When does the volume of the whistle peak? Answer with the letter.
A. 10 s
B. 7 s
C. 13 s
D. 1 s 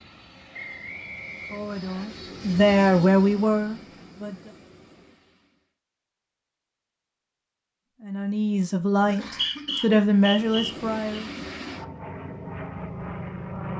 A.